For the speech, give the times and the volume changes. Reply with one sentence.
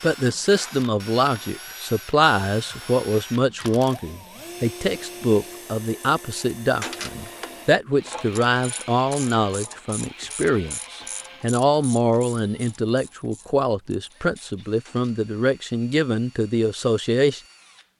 You can hear the speech from 0.0 to 17.4 s, at a steady volume.